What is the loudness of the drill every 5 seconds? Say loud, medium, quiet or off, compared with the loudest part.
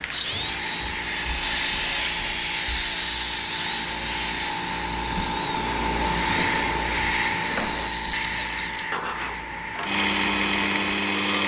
loud, medium, loud.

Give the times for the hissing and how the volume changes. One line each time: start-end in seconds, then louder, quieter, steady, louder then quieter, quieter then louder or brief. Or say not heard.
0.0-11.4 louder then quieter.